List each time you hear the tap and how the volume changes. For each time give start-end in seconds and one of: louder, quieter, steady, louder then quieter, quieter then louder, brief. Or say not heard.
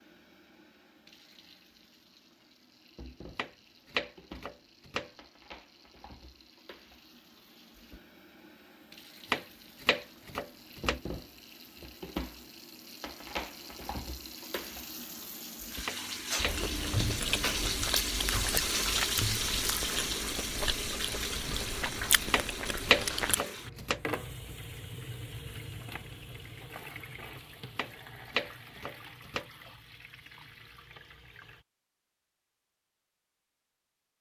0.0-31.6 louder then quieter.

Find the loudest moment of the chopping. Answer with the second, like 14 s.
23 s.